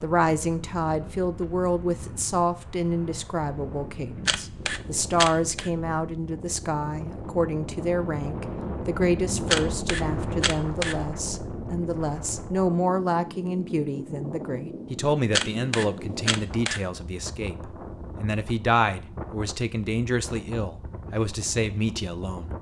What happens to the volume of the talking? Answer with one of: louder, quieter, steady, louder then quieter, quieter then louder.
steady.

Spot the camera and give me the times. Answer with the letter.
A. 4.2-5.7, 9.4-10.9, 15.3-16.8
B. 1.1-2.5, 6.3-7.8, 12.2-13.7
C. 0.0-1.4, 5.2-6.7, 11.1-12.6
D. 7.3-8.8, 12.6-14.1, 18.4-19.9
A.